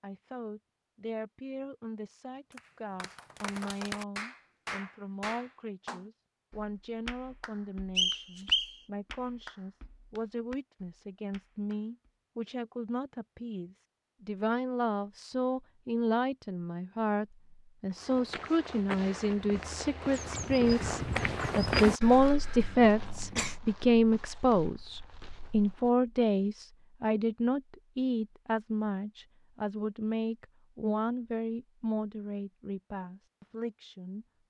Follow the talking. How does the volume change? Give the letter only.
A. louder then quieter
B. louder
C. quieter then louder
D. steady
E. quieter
A.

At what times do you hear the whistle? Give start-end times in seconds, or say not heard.
8.0-8.8.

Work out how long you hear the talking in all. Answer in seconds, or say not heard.
34 s.